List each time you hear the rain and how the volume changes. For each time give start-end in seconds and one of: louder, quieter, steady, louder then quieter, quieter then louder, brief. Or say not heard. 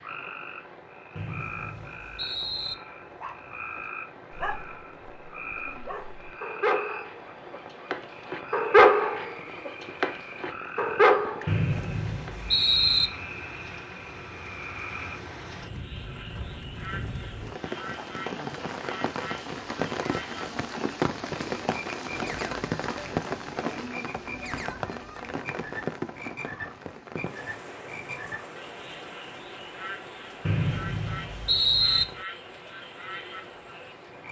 0.0-34.2 louder then quieter.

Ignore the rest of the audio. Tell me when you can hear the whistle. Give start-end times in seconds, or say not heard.
1.1-2.8, 11.4-13.1, 30.4-32.0.